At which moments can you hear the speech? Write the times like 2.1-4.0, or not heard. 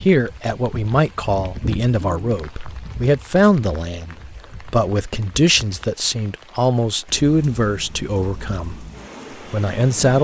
0.0-8.8, 9.5-10.1.